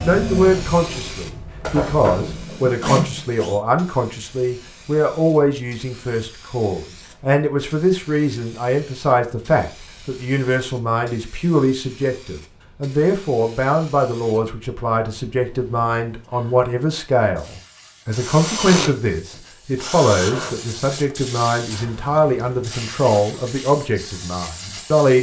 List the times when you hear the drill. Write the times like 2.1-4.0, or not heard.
0.0-3.5, 18.1-20.8.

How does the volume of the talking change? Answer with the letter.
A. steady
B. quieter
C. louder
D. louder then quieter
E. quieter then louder
A.